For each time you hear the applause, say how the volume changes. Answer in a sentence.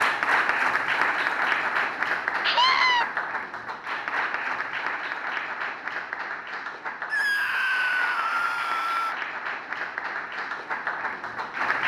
You can hear the applause from 0.0 to 11.8 s, getting quieter.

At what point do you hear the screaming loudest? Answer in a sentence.
The loudest moment of the screaming is at 3 seconds.